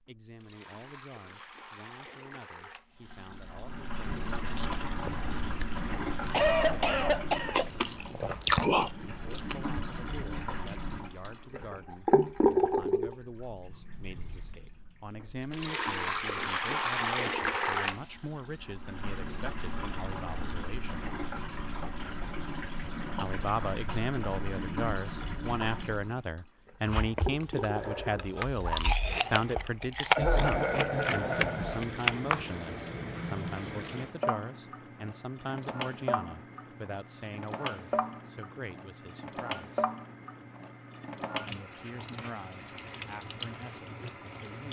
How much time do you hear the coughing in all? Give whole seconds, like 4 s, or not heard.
3 s.